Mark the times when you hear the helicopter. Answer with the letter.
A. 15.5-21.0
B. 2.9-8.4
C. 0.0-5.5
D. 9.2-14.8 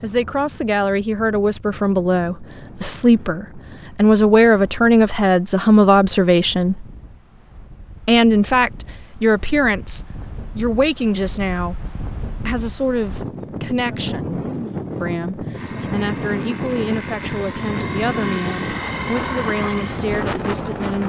A.